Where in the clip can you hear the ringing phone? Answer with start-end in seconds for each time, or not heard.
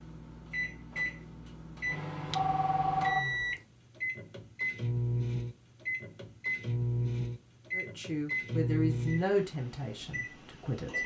2.4-3.4.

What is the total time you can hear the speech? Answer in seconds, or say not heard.
3 s.